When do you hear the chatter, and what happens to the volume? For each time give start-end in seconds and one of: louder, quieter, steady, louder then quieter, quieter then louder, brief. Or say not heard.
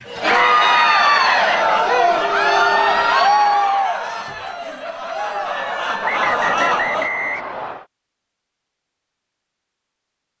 0.1-7.1 quieter then louder.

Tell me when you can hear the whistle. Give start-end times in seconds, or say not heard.
0.7-1.6, 6.0-7.8.